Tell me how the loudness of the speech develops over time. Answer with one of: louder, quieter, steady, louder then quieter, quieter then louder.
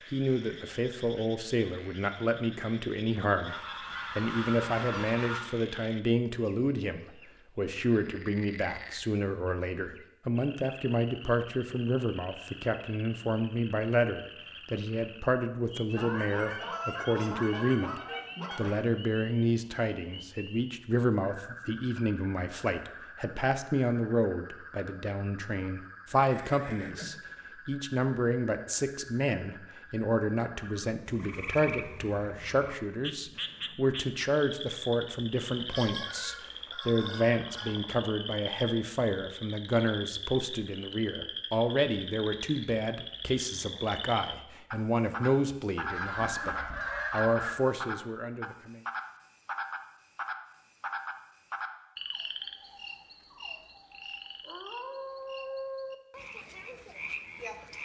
steady.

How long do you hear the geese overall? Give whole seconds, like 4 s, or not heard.
9 s.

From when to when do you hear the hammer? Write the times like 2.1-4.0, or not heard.
not heard.